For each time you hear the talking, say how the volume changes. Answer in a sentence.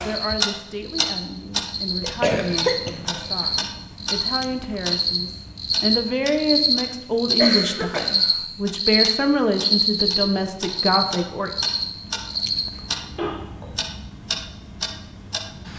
You can hear the talking from 0.0 to 11.5 s, getting louder.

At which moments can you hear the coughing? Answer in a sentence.
The coughing can be heard from 2.0 to 3.6 s, from 7.3 to 8.1 s and from 13.2 to 13.7 s.